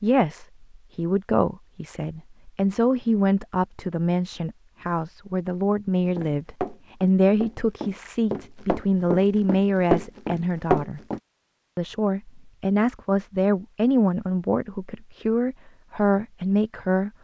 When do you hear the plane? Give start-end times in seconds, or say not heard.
not heard.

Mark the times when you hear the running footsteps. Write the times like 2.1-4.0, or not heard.
6.2-11.2.